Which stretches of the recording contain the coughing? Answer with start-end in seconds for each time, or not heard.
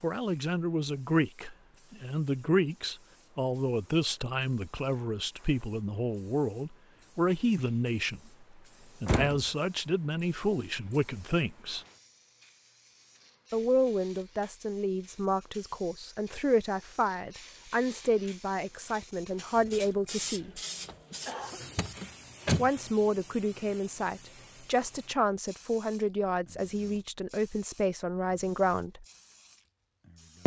20.6-21.6.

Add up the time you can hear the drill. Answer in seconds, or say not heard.
not heard.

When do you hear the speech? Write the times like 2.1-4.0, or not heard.
0.0-8.2, 9.0-11.8, 13.5-20.6, 22.6-29.1.